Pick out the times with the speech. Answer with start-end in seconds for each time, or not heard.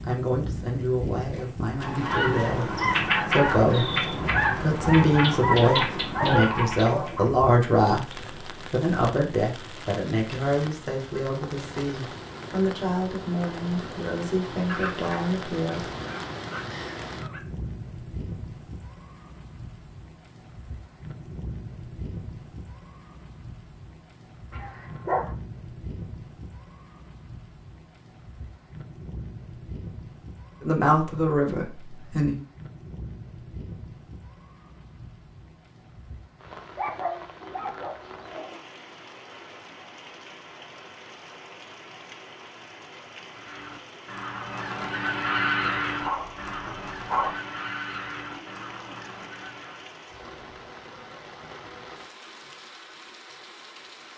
0.0-15.9, 30.6-32.4.